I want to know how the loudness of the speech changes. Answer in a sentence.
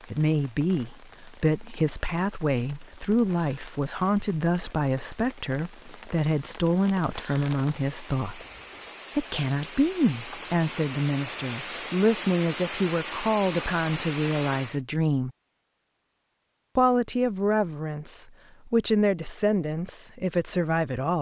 The volume of the speech stays about the same.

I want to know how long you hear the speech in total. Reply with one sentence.
The speech can be heard for 19 seconds in total.